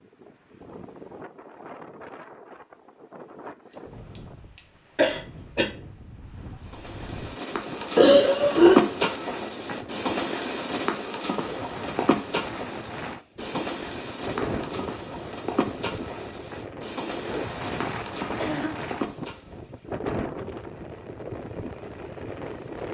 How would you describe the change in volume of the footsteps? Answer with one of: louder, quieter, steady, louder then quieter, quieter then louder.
quieter.